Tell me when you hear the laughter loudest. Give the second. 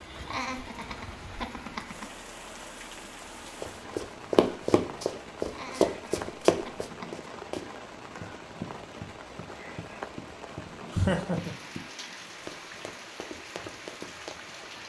11 s.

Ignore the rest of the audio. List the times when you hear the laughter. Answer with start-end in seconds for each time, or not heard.
0.2-2.0, 5.5-7.3, 10.9-11.6.